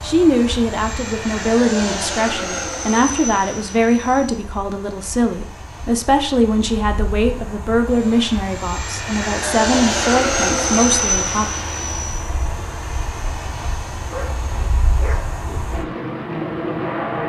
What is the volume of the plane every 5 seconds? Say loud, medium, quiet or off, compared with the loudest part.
medium, medium, loud, loud.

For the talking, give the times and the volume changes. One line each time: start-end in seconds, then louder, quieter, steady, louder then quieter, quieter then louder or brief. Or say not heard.
0.0-11.5 steady.